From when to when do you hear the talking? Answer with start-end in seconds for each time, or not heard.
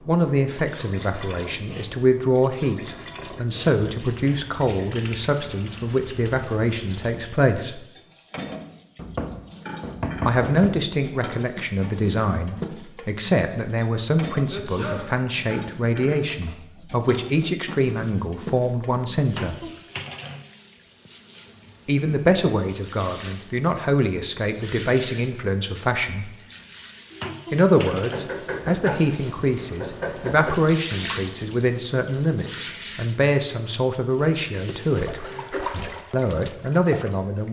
0.1-7.8, 10.2-19.7, 21.9-26.4, 27.5-35.2, 36.1-37.4.